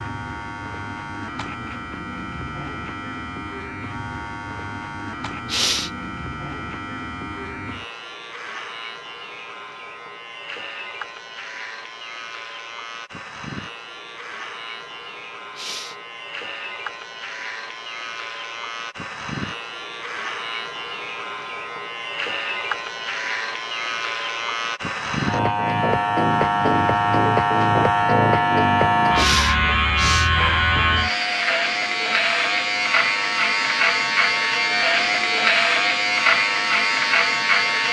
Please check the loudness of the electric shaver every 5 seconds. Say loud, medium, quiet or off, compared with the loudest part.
quiet, quiet, quiet, quiet, medium, loud, loud, loud.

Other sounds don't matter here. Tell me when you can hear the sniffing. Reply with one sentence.
You can hear the sniffing from 5.5 to 5.9 s, from 15.6 to 16.0 s and from 29.1 to 30.3 s.